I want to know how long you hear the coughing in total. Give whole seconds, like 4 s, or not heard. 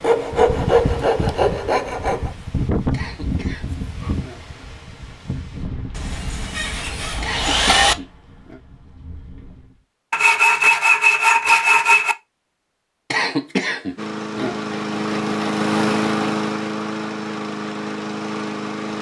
4 s.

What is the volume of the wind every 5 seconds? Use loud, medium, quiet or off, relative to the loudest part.
loud, medium, off, off.